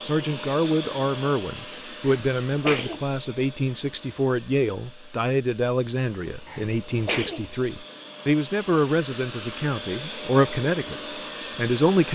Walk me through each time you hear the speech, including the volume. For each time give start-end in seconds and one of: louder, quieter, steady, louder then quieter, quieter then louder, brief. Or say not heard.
0.0-12.1 steady.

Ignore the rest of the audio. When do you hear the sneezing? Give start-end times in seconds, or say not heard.
2.0-3.0, 6.5-7.5.